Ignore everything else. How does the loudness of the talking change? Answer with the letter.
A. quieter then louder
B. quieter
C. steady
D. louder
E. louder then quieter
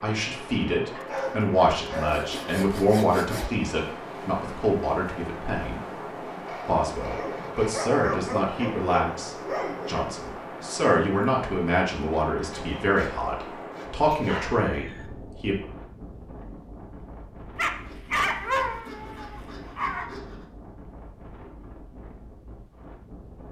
C.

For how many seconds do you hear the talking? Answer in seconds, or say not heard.
15 s.